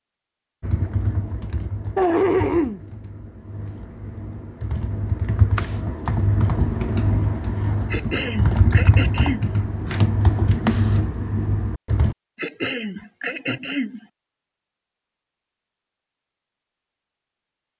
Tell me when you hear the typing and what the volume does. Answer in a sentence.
The typing can be heard from 0.6 to 12.2 s, getting louder.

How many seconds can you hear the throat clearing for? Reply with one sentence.
The throat clearing can be heard for 4 seconds in total.